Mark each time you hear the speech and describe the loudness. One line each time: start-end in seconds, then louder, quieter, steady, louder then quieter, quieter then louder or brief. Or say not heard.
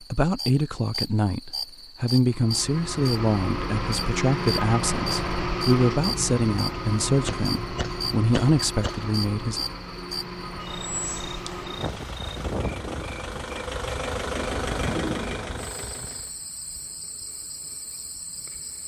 0.1-9.6 steady.